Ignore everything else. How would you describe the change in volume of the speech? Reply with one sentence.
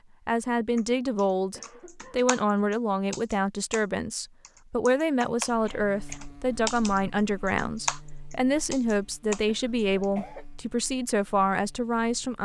The volume of the speech stays about the same.